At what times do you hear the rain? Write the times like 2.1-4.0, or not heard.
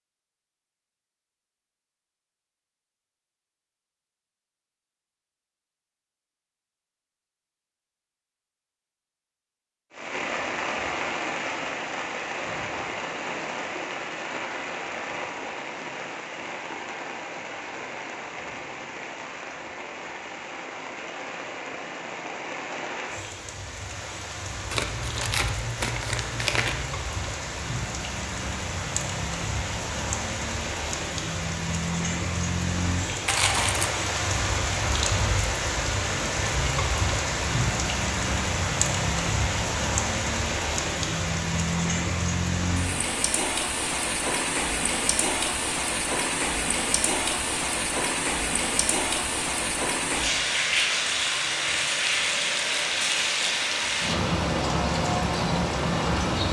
9.9-56.4.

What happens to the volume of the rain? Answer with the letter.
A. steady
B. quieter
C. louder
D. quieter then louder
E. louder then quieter
C.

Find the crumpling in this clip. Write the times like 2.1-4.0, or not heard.
24.7-26.8, 33.2-33.9.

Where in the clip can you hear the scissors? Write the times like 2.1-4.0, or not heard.
not heard.